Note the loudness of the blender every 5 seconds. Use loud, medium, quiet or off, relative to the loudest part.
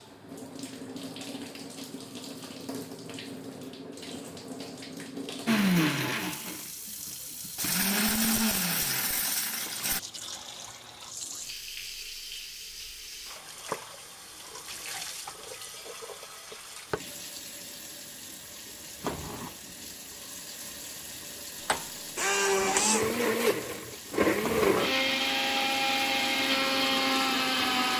off, loud, off, off, loud, loud.